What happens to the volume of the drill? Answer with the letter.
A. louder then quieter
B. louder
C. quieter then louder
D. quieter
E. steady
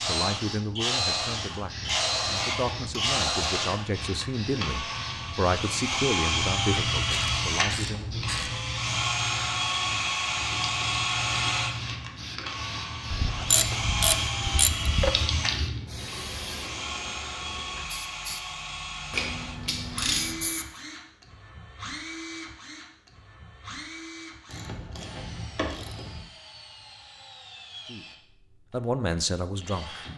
D.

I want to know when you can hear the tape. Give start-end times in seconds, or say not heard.
not heard.